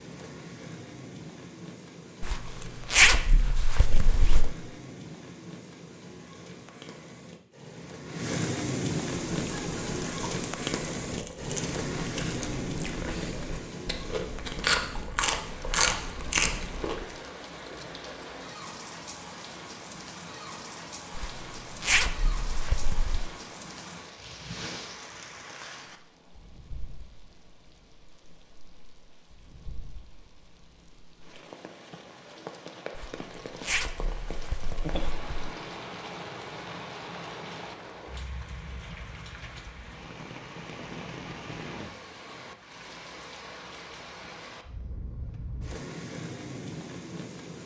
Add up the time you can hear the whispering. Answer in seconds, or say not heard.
not heard.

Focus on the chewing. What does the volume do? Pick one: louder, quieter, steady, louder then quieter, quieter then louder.
louder.